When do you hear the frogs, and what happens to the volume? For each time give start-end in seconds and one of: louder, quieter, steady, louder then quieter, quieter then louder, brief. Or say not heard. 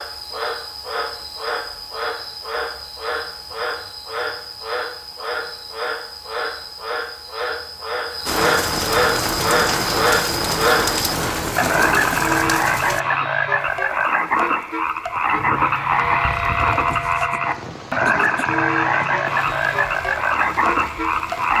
0.0-21.5 louder.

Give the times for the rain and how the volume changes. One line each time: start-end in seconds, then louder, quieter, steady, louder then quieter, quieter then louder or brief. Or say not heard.
8.2-21.5 quieter then louder.